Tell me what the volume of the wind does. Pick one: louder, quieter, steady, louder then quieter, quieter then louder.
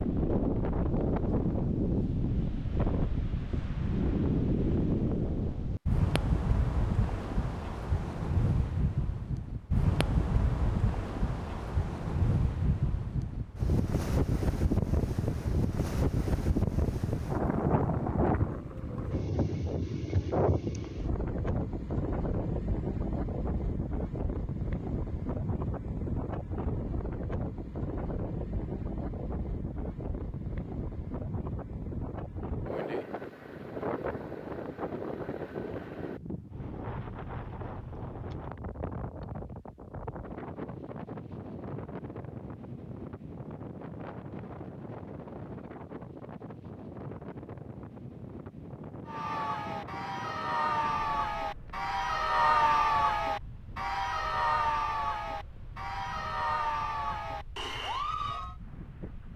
quieter.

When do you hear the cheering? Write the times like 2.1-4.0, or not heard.
49.0-58.5.